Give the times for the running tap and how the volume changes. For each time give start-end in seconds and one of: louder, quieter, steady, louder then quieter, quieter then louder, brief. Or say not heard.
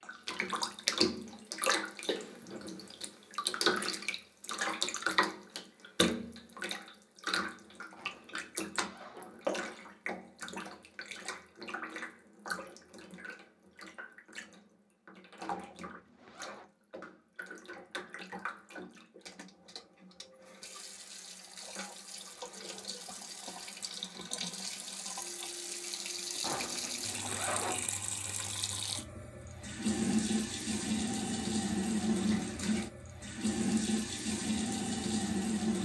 0.0-35.8 quieter then louder.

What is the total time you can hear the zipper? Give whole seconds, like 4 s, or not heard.
4 s.